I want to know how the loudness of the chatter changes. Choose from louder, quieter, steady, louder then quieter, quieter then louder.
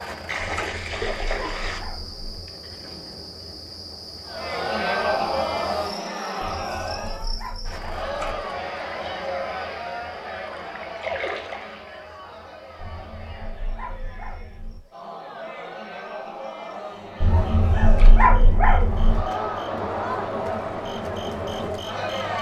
quieter then louder.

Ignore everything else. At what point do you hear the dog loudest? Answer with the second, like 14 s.
18 s.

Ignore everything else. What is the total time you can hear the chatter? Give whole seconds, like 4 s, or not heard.
18 s.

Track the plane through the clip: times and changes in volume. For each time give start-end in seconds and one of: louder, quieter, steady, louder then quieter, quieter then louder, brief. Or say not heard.
not heard.